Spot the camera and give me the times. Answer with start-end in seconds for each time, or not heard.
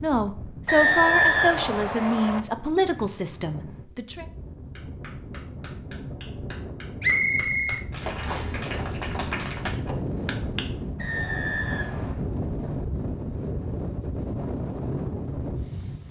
not heard.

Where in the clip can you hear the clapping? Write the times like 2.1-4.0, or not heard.
4.8-10.7.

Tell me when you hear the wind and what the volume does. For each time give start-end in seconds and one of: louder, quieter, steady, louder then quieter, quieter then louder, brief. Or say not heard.
0.0-16.0 louder.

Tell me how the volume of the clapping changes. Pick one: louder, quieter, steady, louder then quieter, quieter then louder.
louder.